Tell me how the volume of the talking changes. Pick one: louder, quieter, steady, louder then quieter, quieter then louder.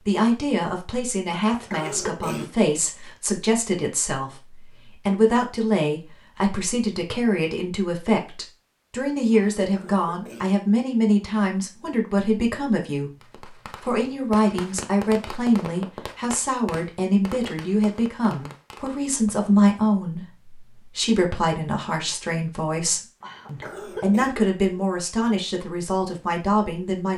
steady.